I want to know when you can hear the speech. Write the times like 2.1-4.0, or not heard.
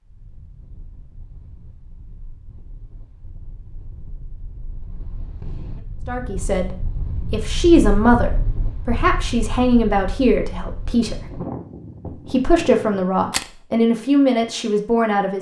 6.0-11.2, 12.3-15.3.